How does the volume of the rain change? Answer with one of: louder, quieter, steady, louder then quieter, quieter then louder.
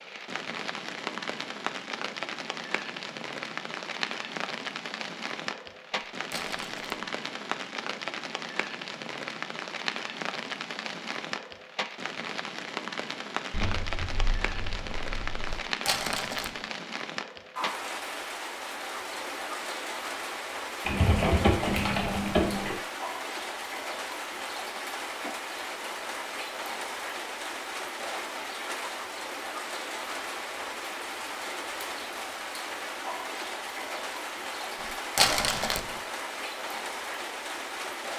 steady.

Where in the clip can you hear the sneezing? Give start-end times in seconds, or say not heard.
not heard.